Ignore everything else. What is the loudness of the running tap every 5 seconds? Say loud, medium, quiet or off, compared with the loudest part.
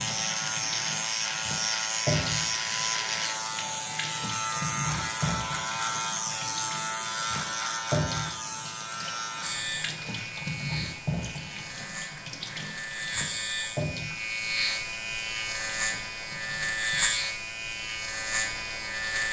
loud, loud, loud, quiet.